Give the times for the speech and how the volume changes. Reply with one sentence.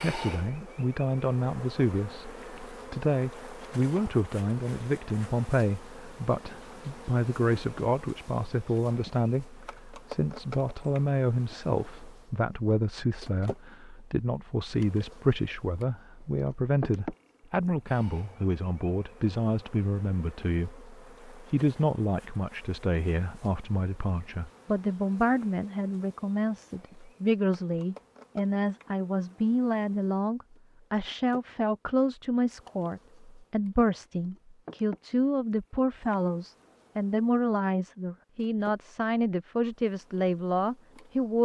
You can hear the speech from 0.0 to 41.3 s, at a steady volume.